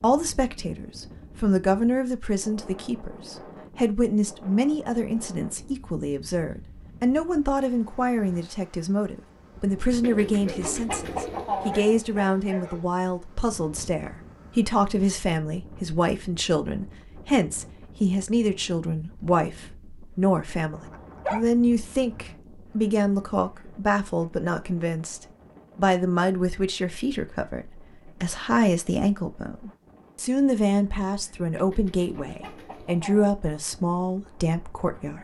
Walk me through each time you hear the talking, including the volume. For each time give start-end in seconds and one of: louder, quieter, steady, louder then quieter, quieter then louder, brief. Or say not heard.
0.0-35.1 steady.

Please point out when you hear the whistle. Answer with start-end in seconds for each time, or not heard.
not heard.